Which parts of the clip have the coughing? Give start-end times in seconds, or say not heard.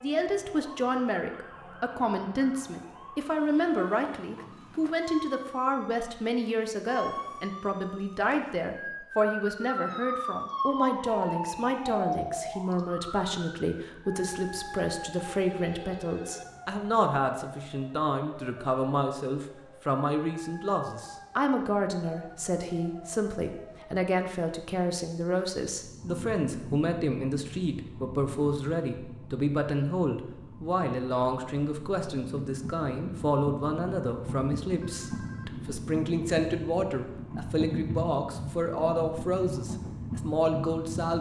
not heard.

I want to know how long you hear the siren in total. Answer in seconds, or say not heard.
24 s.